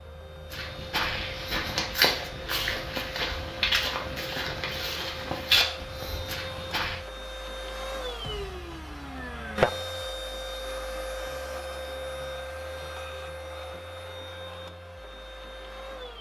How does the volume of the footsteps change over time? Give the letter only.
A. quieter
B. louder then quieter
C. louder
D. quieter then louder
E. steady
D.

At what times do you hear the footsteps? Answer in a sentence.
The footsteps can be heard from 0.5 to 7.0 s.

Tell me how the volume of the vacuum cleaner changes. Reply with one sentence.
The volume of the vacuum cleaner goes up, then down.